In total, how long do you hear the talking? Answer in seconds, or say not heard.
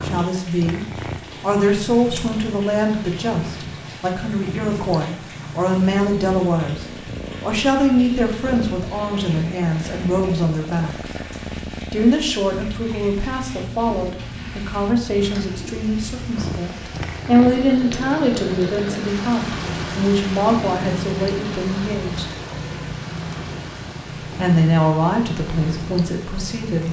24 s.